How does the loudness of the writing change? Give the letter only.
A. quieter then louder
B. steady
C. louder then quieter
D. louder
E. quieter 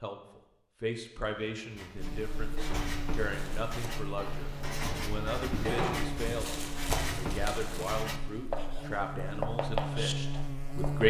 D.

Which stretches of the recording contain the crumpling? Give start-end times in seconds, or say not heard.
2.5-3.8, 5.6-8.0.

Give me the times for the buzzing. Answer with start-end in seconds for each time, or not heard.
1.9-11.0.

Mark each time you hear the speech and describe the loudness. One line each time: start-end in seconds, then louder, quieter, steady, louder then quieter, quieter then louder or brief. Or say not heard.
0.0-11.0 steady.